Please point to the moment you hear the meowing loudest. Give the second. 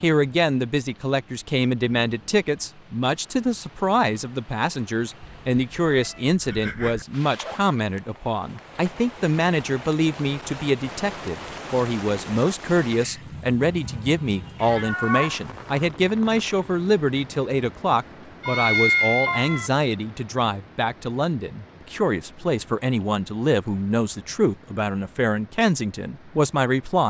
19 s.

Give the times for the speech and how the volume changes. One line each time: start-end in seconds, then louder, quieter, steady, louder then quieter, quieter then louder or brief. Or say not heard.
0.0-27.0 steady.